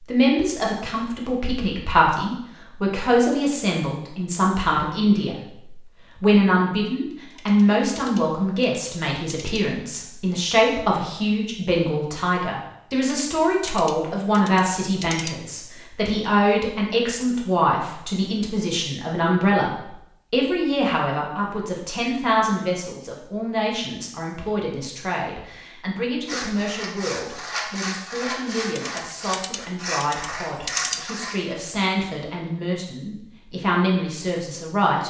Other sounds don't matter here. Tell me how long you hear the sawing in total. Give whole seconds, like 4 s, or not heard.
5 s.